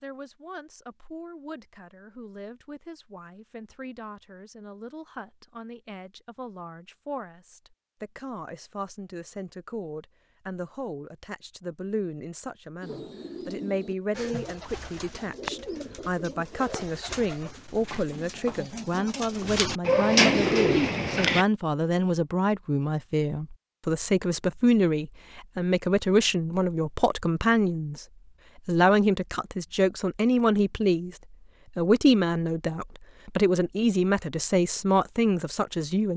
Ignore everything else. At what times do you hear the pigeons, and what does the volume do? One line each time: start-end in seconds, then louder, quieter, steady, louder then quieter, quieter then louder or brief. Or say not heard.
12.8-21.4 louder.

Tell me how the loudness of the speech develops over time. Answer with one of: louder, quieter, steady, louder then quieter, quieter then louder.
louder.